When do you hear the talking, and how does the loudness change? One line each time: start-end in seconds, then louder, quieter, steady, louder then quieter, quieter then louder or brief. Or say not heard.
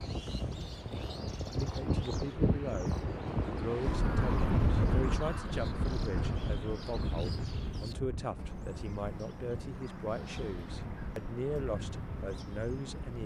1.6-13.2 steady.